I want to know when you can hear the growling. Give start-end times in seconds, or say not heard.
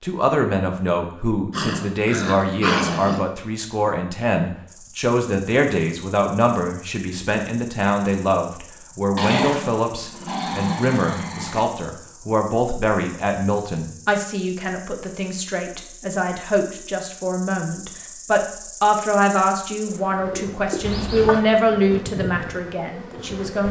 1.5-3.2, 9.2-11.7, 20.8-21.6.